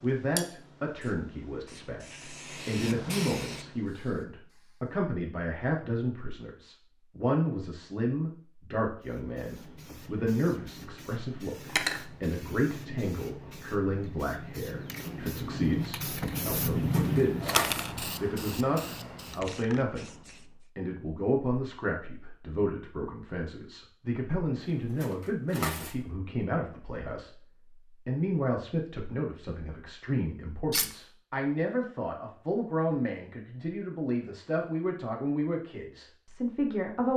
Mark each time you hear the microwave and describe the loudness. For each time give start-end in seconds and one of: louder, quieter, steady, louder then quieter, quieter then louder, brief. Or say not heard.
not heard.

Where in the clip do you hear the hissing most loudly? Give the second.
17 s.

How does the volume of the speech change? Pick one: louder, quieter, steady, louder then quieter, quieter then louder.
steady.